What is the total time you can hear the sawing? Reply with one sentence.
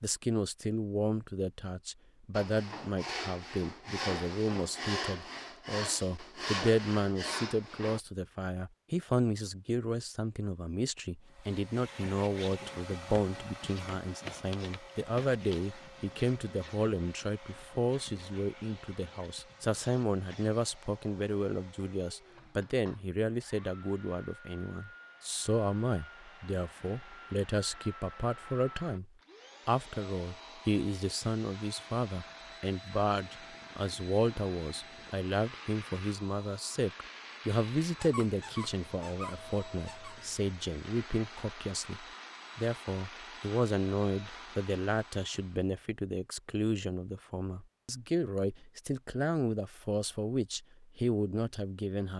You can hear the sawing for 6 seconds altogether.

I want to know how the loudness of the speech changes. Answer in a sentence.
The loudness of the speech stays about the same.